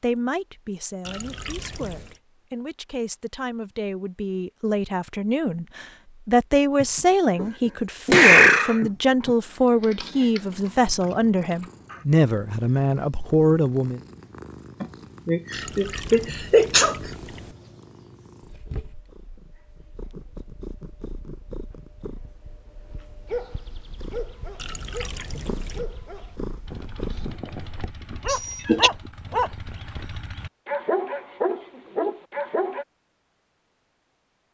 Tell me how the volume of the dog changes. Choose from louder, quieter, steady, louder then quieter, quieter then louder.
louder.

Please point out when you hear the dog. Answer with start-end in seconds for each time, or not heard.
23.2-32.9.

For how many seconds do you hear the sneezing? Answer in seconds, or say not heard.
5 s.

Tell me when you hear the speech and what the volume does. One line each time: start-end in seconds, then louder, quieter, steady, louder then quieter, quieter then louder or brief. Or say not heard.
0.0-14.0 louder.